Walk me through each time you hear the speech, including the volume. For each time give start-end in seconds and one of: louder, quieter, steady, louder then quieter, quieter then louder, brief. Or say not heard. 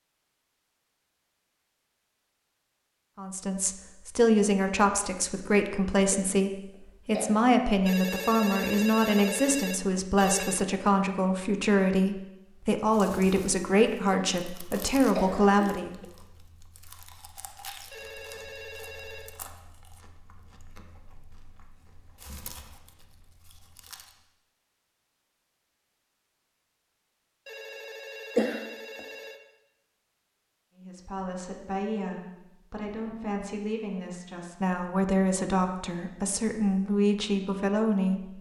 3.1-15.9 steady
30.8-38.3 louder.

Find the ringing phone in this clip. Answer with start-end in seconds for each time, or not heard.
7.8-10.7, 17.9-19.4, 27.4-29.4.